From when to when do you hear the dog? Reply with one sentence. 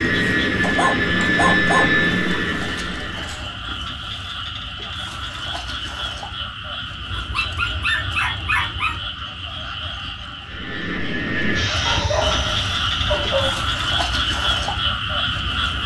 The dog can be heard from 0.6 to 1.9 s, from 7.1 to 9.0 s and from 11.8 to 13.7 s.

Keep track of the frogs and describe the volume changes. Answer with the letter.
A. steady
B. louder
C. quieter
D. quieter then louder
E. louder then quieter
B.